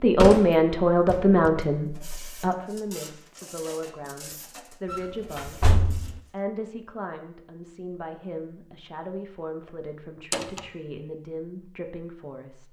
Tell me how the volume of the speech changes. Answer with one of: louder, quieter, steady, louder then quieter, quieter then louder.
quieter.